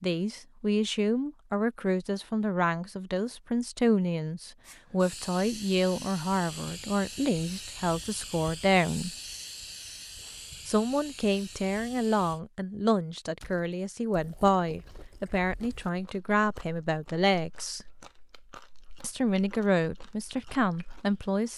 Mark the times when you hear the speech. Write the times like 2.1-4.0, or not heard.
0.0-9.1, 10.7-17.9, 19.0-21.5.